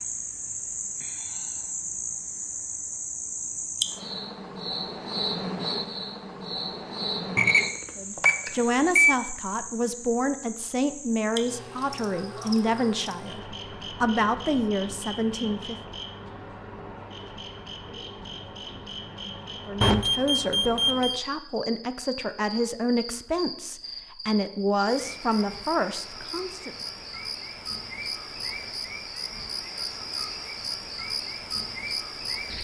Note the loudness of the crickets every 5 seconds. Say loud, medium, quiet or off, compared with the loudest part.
loud, loud, medium, medium, medium, loud, loud.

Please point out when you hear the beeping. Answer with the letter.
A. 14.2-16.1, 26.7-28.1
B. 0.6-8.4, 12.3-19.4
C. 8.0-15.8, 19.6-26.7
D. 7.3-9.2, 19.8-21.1
D.